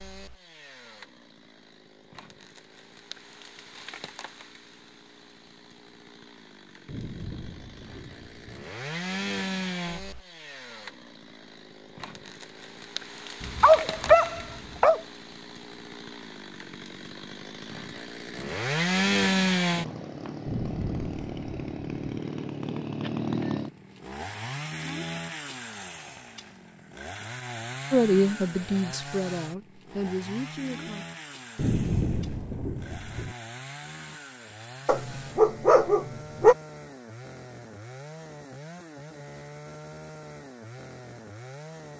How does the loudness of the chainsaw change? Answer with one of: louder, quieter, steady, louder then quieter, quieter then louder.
louder then quieter.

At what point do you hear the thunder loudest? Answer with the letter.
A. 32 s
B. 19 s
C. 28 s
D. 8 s
A.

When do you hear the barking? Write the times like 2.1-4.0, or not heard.
13.4-15.0, 34.9-36.5.